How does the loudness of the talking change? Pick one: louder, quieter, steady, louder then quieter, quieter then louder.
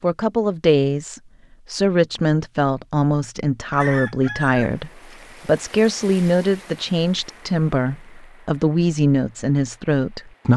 steady.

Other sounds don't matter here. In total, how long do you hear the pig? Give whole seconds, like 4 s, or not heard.
not heard.